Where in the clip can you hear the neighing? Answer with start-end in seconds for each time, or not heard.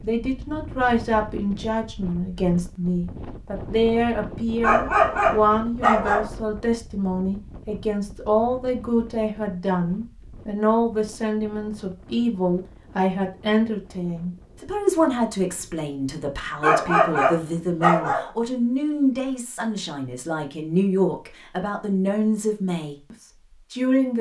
not heard.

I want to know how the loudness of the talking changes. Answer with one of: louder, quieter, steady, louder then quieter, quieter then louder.
steady.